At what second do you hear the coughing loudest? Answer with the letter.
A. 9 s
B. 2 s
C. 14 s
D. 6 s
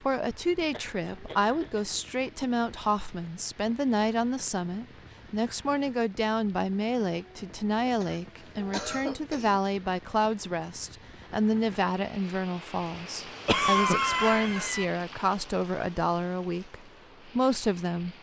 C.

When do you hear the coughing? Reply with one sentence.
The coughing can be heard from 0.7 to 1.8 s, from 7.8 to 9.6 s and from 13.4 to 14.8 s.